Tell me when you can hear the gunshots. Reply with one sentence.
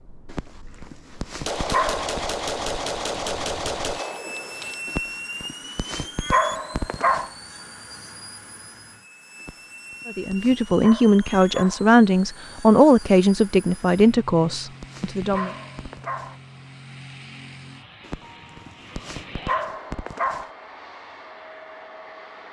The gunshots can be heard from 1.4 to 4.8 s.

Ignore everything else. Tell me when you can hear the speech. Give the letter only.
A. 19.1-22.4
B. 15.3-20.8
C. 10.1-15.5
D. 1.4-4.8
C.